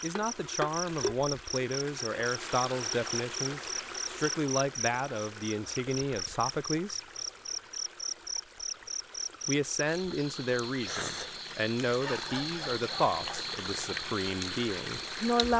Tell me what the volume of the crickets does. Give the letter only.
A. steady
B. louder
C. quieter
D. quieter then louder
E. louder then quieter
A.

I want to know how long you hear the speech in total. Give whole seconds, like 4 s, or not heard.
13 s.